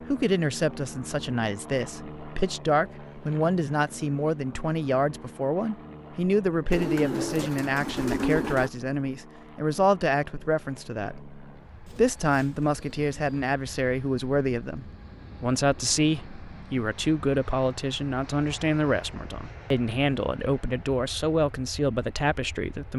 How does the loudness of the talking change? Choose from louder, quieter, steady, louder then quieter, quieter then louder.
steady.